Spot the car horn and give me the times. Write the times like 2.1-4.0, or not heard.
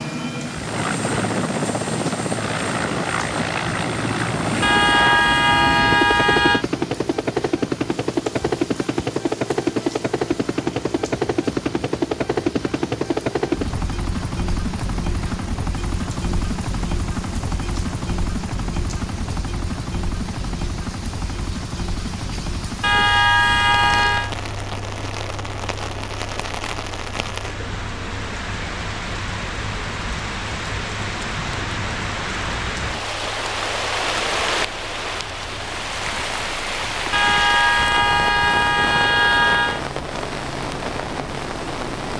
4.6-6.7, 22.8-24.3, 37.1-39.8.